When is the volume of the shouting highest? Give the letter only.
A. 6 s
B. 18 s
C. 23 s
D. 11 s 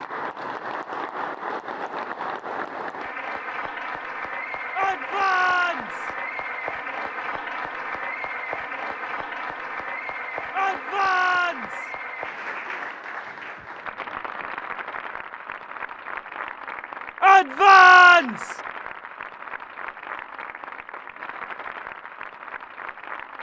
B.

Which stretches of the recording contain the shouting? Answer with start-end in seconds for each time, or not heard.
4.8-6.1, 10.5-11.9, 17.2-18.6.